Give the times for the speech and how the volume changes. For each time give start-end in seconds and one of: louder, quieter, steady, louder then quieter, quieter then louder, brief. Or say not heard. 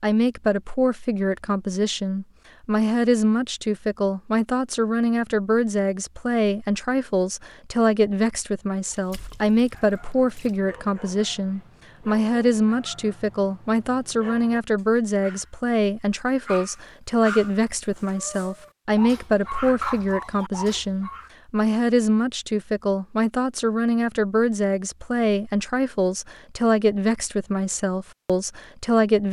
0.0-29.2 steady.